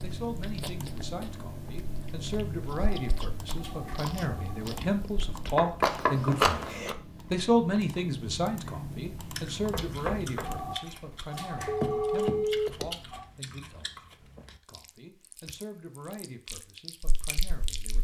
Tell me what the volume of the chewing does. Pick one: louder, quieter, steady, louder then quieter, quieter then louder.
louder then quieter.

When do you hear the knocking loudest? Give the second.
6 s.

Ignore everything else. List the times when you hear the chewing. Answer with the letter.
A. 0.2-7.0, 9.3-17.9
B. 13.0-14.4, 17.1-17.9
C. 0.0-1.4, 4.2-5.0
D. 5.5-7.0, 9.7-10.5
A.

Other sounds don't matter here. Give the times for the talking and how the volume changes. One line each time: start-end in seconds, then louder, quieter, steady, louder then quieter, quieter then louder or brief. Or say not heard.
0.0-17.9 louder then quieter.